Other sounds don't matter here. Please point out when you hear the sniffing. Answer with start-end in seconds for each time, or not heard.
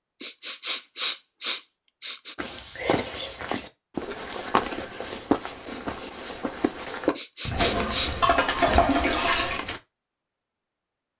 0.2-2.4, 7.2-8.2.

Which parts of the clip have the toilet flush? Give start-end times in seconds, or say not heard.
7.5-9.6.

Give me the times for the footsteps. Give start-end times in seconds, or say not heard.
2.4-9.8.